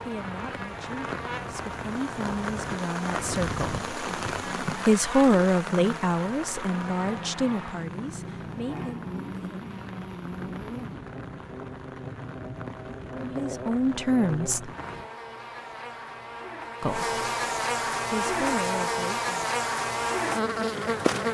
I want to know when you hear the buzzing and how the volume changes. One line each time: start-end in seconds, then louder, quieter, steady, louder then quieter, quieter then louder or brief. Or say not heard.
0.0-21.2 louder.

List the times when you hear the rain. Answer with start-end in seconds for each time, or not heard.
0.0-15.1.